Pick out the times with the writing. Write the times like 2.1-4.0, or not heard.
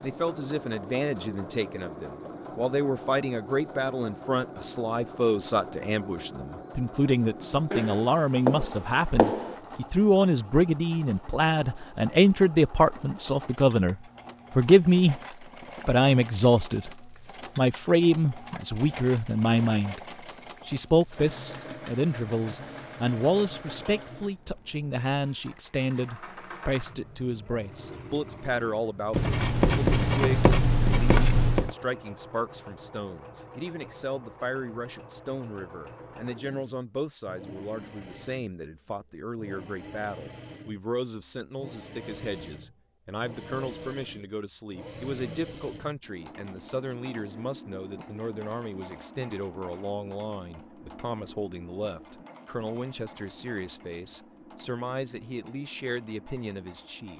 7.7-9.6, 29.1-31.8.